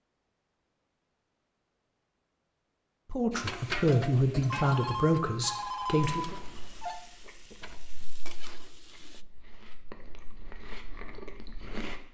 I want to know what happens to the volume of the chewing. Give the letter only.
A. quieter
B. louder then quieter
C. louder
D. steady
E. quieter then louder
E.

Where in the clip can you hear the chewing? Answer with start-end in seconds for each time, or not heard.
6.2-12.0.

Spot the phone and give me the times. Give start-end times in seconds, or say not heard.
4.4-7.0.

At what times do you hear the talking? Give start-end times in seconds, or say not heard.
3.1-6.3.